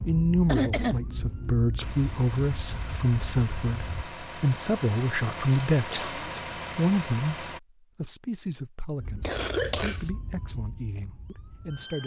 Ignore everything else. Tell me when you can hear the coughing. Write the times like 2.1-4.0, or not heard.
0.5-1.0, 5.5-6.4, 9.2-10.1.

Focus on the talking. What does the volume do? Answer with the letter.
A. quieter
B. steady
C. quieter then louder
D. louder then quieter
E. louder
A.